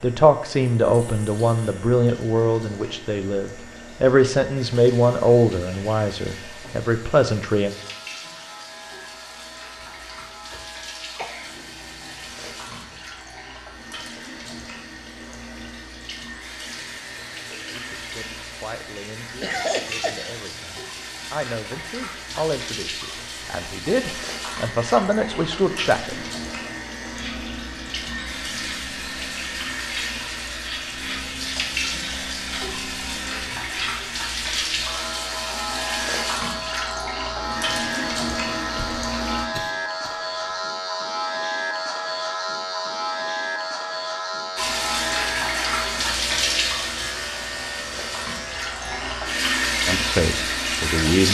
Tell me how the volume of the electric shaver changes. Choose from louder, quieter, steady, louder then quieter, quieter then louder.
louder.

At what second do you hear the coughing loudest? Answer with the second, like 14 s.
20 s.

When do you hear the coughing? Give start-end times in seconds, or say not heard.
9.8-11.7, 19.4-20.4, 38.8-40.5.